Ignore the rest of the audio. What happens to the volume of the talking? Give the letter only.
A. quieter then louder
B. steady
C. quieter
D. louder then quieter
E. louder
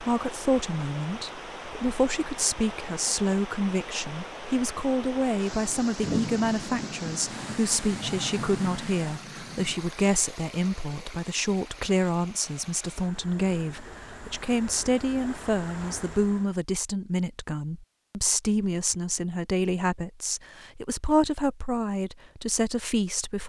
B.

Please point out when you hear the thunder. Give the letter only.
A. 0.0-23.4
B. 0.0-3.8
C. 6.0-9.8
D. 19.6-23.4
C.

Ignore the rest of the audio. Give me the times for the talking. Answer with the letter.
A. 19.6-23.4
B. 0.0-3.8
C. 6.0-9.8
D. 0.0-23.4
D.